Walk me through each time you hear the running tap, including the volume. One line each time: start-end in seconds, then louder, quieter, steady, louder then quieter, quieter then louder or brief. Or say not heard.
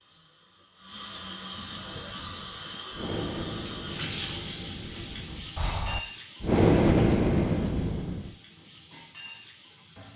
0.0-10.1 quieter.